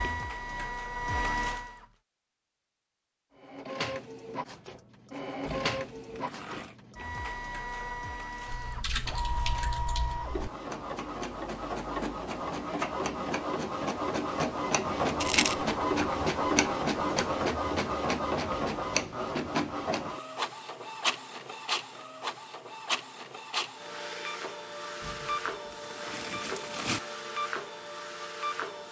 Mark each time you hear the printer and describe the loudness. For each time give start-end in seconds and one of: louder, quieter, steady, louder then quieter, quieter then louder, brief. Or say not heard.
0.0-1.9 brief
3.4-28.8 louder then quieter.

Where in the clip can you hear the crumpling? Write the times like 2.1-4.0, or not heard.
5.5-6.8, 25.0-27.0.